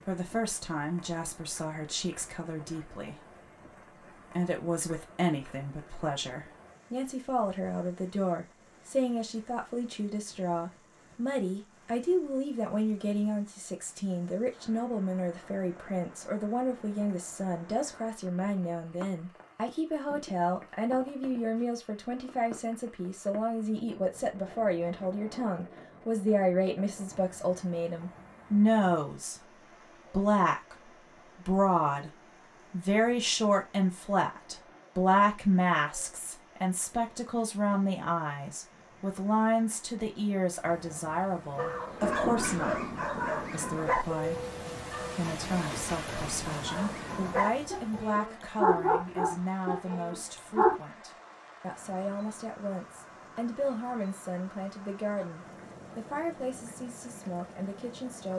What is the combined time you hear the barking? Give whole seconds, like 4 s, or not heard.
9 s.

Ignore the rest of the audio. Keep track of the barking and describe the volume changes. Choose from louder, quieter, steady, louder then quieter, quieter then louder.
quieter then louder.